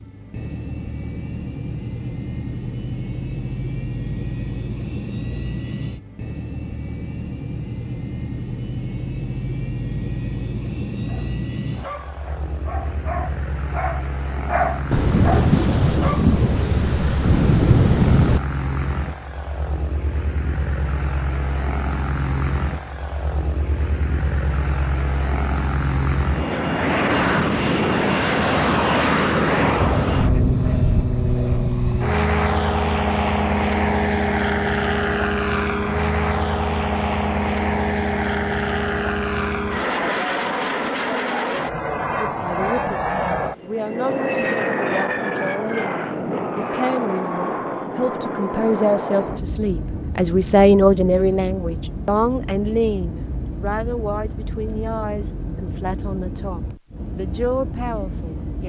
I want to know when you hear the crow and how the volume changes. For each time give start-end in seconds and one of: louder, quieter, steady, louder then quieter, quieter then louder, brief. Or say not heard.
not heard.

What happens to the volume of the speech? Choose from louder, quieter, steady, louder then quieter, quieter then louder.
louder then quieter.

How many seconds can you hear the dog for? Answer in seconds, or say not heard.
5 s.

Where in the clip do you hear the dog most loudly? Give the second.
15 s.